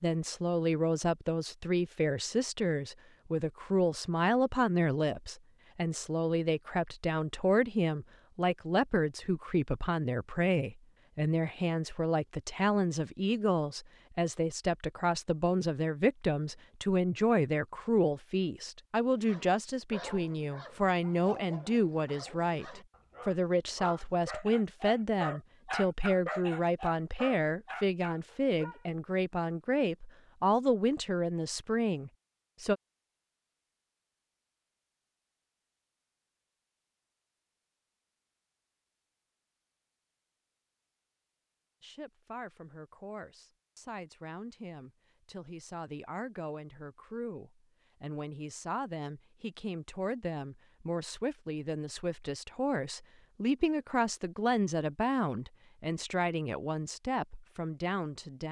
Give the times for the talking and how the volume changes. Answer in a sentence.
The talking can be heard from 0.0 to 32.8 s, at a steady volume; and from 41.8 to 58.4 s, getting louder.